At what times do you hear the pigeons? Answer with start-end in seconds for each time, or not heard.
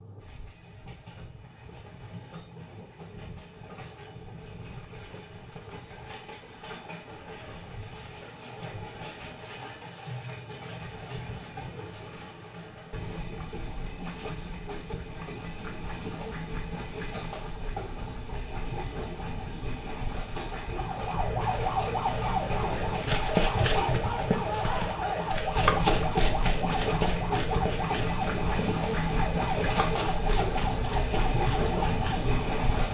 not heard.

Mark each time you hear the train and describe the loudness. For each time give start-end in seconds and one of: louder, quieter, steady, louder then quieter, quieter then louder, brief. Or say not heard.
0.0-32.8 louder.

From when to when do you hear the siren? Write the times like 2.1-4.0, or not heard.
20.8-32.6.